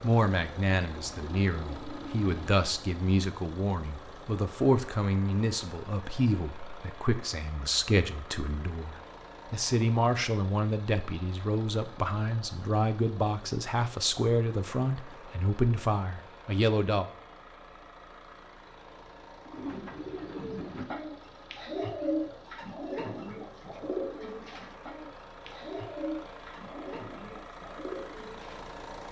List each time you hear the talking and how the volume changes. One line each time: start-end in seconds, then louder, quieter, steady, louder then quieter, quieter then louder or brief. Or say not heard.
0.0-17.1 steady.